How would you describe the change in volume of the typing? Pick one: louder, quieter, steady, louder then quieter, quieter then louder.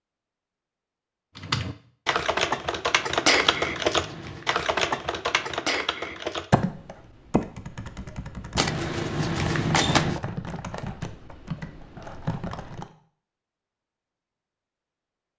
quieter.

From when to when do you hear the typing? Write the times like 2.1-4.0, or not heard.
1.4-12.9.